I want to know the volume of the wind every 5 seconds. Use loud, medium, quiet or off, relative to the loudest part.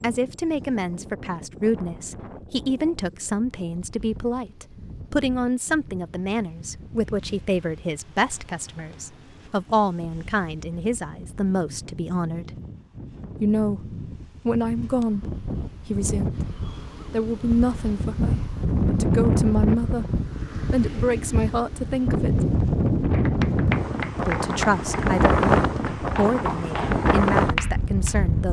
quiet, quiet, quiet, loud, loud, loud.